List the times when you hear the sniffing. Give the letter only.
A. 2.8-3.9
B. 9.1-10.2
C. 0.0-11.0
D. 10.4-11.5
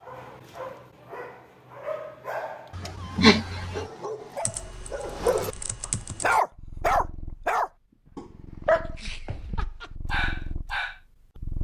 A.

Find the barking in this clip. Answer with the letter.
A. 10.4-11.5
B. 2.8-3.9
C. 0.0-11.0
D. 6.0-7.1
C.